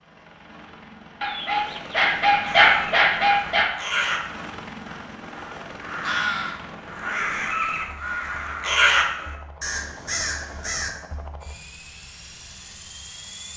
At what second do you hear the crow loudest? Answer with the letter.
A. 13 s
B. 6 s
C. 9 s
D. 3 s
C.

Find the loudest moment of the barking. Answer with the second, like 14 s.
3 s.